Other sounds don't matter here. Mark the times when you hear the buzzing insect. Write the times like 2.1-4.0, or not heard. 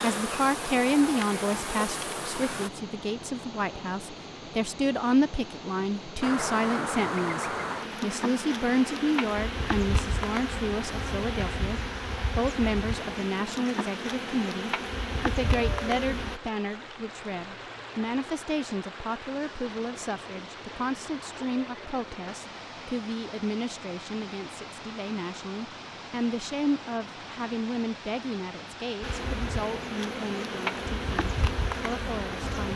0.0-2.7, 6.2-16.4, 29.0-32.7.